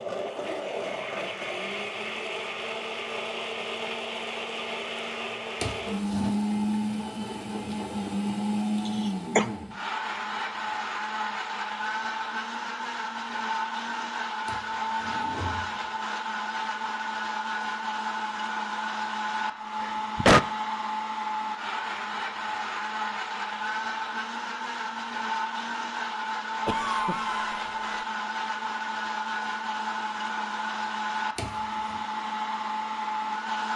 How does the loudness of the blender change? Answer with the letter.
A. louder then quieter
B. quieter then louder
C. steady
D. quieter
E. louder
C.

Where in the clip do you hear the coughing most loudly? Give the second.
20 s.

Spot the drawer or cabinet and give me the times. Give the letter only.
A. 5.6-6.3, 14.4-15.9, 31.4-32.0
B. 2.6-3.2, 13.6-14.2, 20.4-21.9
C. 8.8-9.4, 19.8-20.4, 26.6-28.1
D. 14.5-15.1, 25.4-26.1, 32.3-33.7
A.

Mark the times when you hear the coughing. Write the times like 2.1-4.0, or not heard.
8.8-9.4, 19.8-20.4, 26.6-28.1.